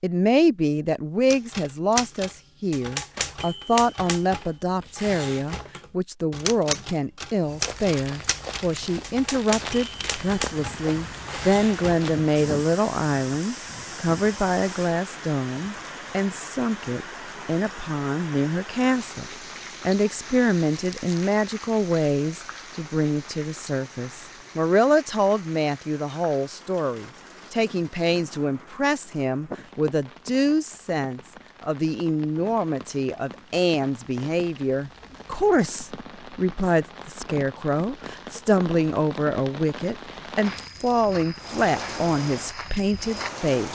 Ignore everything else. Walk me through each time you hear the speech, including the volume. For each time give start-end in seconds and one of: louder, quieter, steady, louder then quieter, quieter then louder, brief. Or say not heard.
0.0-43.6 steady.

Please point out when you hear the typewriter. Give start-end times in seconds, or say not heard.
1.3-12.1.